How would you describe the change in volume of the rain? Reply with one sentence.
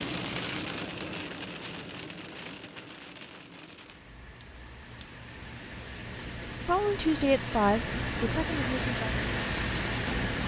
The loudness of the rain goes down, then up.